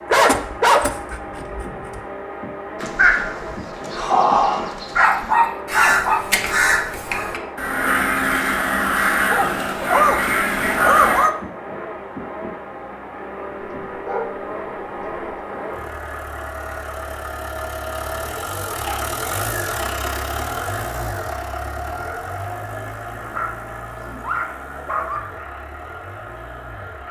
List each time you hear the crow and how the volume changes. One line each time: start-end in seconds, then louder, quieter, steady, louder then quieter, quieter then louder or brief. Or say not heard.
2.8-11.3 steady.